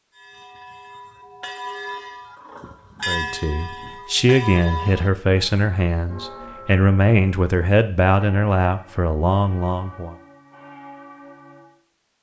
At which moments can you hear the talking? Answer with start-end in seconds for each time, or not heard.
3.0-10.2.